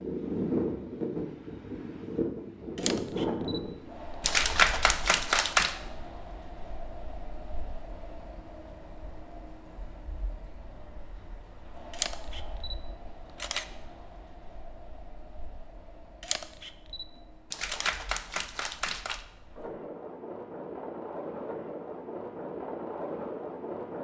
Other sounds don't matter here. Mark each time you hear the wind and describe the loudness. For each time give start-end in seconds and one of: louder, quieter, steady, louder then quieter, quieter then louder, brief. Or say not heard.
0.0-23.9 quieter then louder.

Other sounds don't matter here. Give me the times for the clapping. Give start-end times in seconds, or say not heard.
4.2-5.8, 17.5-19.2.